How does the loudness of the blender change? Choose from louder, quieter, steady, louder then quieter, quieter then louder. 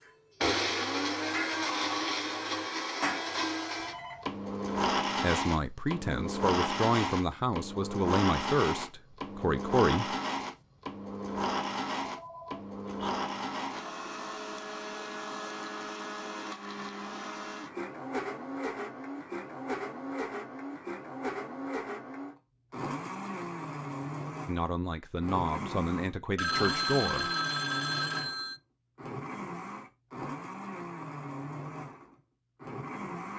quieter.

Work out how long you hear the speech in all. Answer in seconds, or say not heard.
8 s.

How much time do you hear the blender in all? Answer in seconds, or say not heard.
33 s.